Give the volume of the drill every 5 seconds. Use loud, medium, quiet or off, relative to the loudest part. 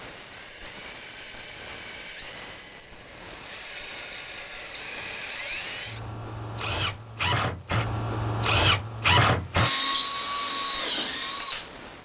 quiet, loud, loud.